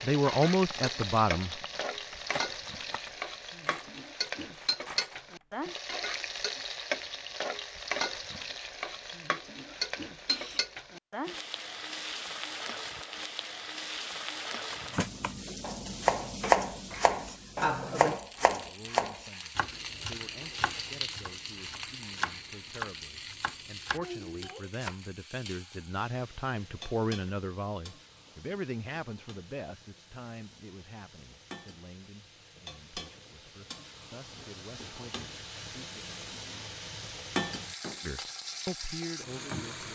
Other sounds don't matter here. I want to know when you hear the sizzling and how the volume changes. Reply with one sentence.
The sizzling can be heard from 0.0 to 39.9 s, getting quieter then louder.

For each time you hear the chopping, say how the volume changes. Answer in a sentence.
You can hear the chopping from 14.7 to 24.9 s, getting quieter.